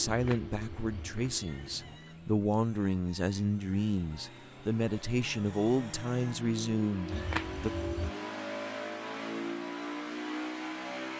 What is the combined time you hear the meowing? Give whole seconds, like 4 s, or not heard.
3 s.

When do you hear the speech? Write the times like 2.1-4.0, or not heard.
0.0-7.7.